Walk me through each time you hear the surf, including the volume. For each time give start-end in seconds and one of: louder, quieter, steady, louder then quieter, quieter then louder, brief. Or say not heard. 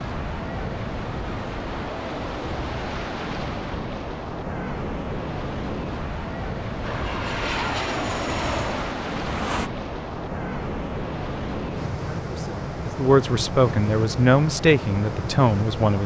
0.0-16.0 steady.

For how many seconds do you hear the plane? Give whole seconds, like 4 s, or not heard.
3 s.